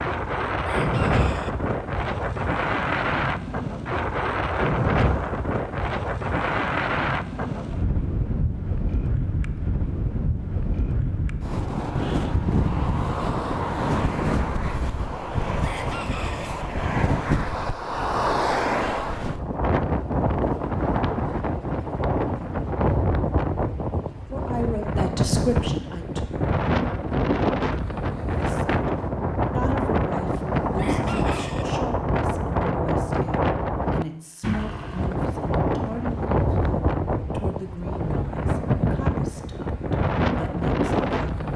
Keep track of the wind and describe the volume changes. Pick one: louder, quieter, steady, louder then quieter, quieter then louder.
steady.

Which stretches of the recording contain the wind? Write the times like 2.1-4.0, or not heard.
0.0-41.5.